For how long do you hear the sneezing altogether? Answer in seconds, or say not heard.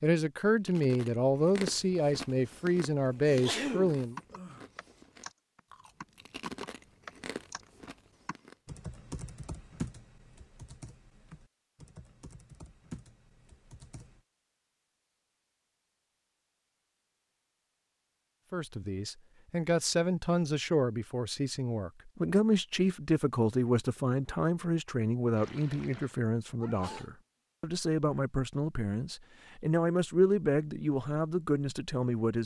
2 s.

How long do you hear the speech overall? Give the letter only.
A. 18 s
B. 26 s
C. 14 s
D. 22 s
A.